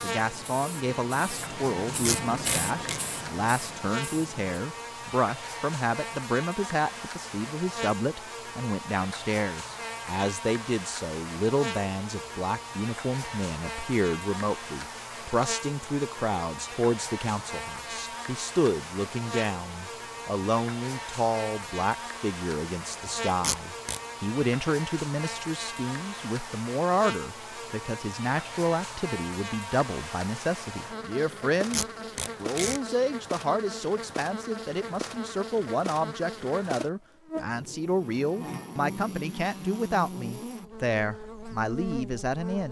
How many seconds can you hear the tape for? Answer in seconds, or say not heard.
3 s.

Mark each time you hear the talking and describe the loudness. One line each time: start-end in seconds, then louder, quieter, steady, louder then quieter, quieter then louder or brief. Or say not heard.
0.0-42.6 steady.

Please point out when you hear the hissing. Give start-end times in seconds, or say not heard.
0.0-4.5.